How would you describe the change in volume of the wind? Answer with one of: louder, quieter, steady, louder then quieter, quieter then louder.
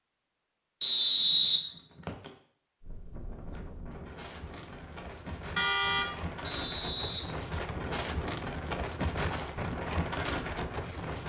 louder.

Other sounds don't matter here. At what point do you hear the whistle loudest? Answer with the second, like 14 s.
1 s.